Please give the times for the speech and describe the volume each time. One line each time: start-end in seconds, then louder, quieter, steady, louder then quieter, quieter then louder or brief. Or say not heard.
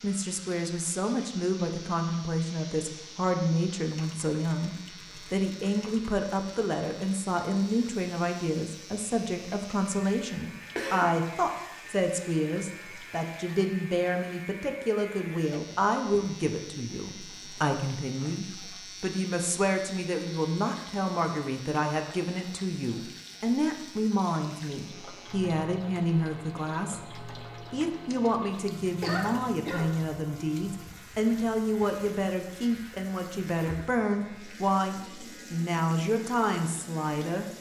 0.0-37.5 steady.